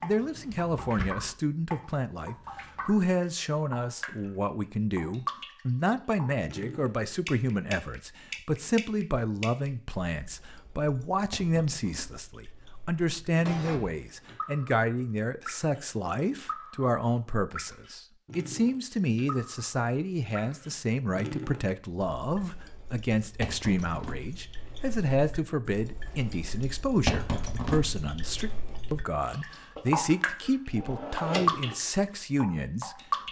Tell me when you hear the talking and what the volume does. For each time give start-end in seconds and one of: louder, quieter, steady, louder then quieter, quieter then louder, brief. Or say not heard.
0.0-33.2 steady.